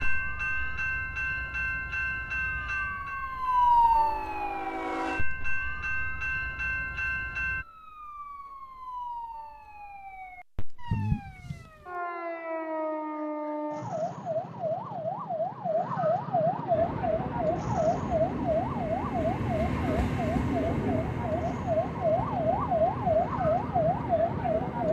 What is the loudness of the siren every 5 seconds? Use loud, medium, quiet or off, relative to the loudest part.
loud, quiet, medium, loud, loud.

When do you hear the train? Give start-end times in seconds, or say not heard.
0.0-7.7, 16.7-24.8.